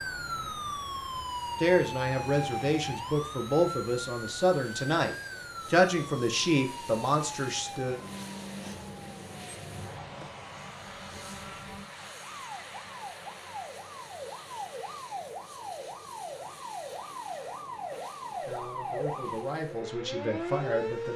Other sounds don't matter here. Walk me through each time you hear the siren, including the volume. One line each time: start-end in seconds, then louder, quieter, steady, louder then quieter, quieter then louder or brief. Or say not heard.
0.0-21.1 quieter then louder.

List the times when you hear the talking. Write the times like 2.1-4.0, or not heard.
1.6-8.0, 18.4-21.1.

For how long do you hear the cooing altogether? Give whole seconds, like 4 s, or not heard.
not heard.